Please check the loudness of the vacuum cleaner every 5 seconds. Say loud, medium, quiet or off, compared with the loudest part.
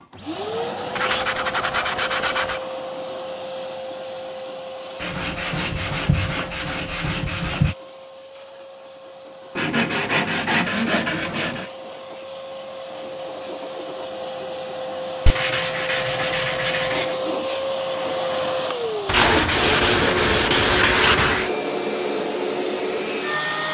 medium, quiet, medium, loud, loud.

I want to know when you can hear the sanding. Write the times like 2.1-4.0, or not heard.
0.9-2.6, 5.0-7.8, 9.6-11.7, 15.2-17.2, 19.1-21.5.